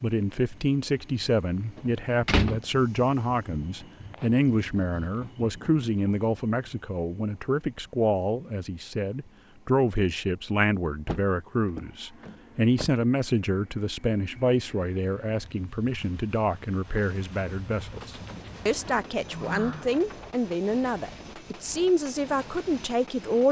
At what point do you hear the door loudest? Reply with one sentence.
The volume of the door peaks at 2 seconds.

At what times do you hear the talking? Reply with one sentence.
The talking can be heard from 0.0 to 23.4 s.